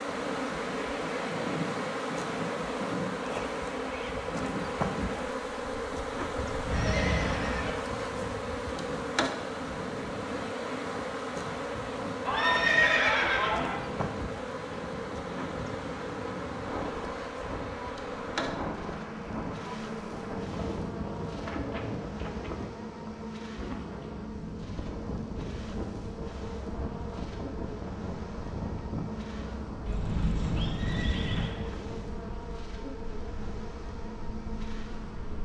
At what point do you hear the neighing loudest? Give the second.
13 s.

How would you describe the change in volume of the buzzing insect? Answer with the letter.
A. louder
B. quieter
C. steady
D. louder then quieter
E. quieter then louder
B.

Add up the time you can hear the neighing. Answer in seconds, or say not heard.
4 s.